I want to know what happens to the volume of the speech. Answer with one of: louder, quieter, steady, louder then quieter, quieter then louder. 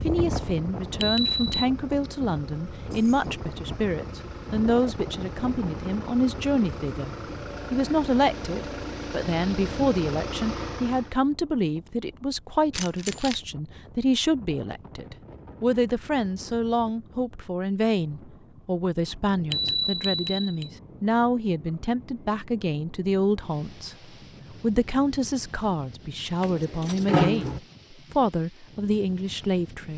steady.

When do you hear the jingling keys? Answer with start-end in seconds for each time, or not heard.
2.8-3.3, 12.7-13.4, 26.4-27.6.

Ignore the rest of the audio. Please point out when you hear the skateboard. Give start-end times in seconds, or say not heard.
not heard.